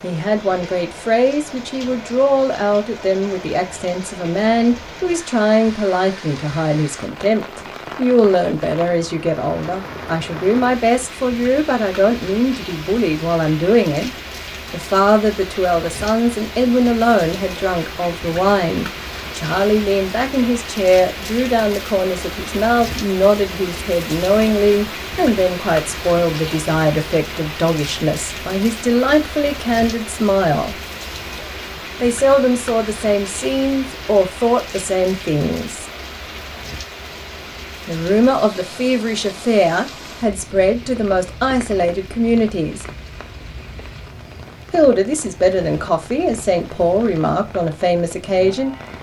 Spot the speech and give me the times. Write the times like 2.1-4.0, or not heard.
0.0-30.8, 31.9-35.9, 37.9-42.9, 44.7-48.8.